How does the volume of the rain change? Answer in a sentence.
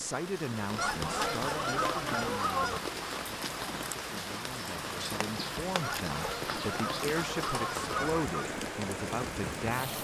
The volume of the rain stays about the same.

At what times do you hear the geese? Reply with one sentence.
The geese can be heard from 0.8 to 2.8 s and from 5.8 to 8.5 s.